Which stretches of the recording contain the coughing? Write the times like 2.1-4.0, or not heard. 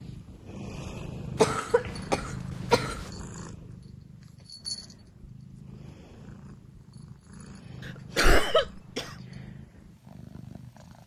1.4-3.0, 7.8-9.1.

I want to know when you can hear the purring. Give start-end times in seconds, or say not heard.
0.0-11.0.